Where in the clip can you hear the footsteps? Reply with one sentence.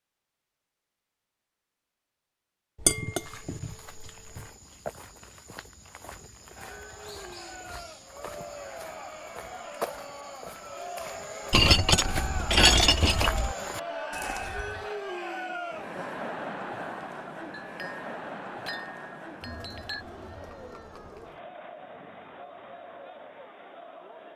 You can hear the footsteps from 3.0 to 14.9 s.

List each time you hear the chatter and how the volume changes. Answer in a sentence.
You can hear the chatter from 6.5 to 24.3 s, getting louder then quieter.